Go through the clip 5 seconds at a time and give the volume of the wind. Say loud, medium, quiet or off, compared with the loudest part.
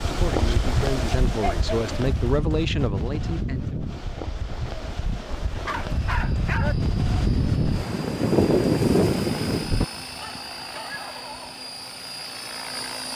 medium, loud, off.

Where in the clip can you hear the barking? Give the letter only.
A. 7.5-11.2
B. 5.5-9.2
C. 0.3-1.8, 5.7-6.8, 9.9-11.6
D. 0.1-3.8
C.